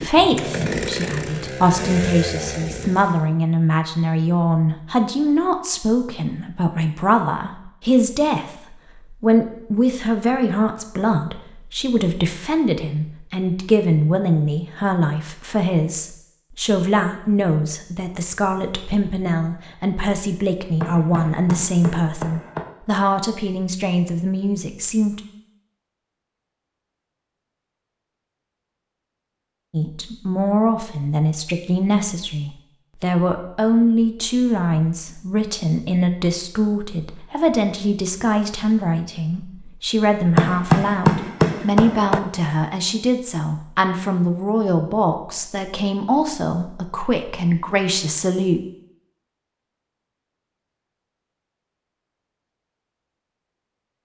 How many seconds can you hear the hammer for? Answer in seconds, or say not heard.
4 s.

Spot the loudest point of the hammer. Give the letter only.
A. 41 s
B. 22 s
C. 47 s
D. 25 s
A.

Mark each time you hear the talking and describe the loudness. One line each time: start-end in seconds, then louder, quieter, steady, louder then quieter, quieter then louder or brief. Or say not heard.
0.0-25.2 steady
29.7-48.6 steady.